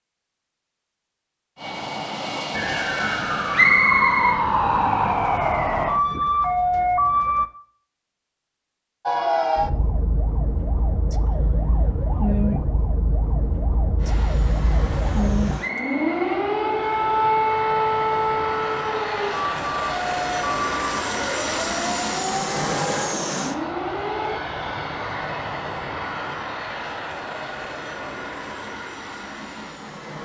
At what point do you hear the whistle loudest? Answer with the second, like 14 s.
4 s.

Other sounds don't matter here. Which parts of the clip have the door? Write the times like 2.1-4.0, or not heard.
not heard.